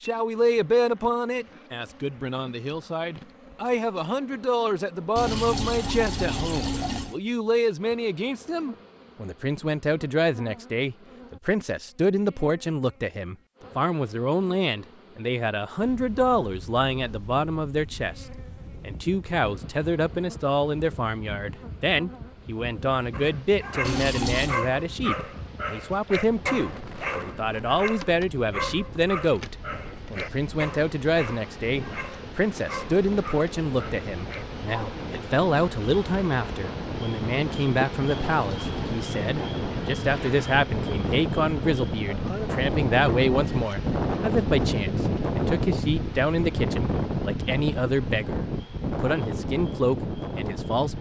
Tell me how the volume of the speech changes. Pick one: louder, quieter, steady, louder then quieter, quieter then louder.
steady.